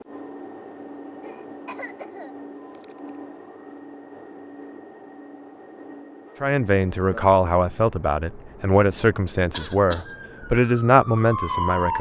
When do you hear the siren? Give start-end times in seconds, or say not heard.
10.0-11.9.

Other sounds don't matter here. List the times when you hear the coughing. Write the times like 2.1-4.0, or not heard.
1.2-3.1, 9.5-10.2.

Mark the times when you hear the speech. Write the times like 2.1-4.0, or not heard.
6.4-11.9.